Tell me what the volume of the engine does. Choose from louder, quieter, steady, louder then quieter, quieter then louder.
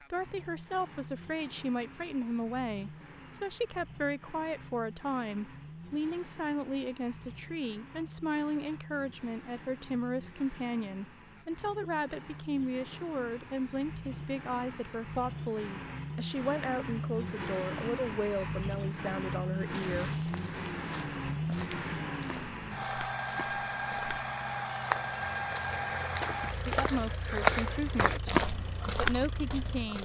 louder.